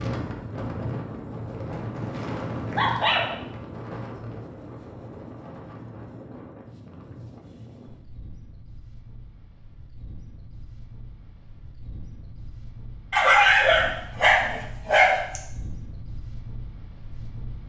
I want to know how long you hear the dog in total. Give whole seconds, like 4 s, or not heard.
4 s.